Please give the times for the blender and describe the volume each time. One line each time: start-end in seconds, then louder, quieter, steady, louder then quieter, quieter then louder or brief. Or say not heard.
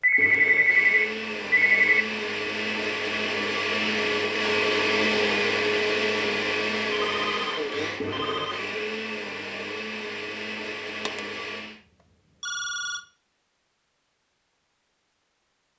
0.1-11.8 louder then quieter.